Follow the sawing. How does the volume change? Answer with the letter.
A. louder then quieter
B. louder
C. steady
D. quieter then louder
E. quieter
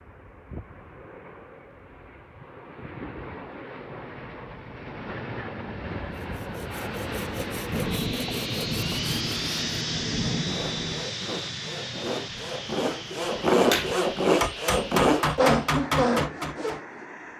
B.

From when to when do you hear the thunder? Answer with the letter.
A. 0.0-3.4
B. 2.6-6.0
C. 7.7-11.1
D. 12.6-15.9
C.